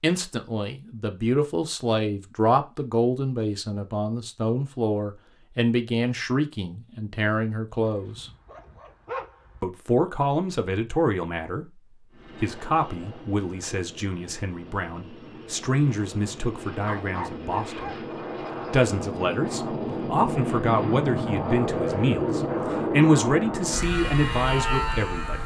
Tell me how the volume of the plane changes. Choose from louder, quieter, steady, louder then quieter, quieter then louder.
louder.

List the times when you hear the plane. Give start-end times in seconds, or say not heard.
12.1-25.4.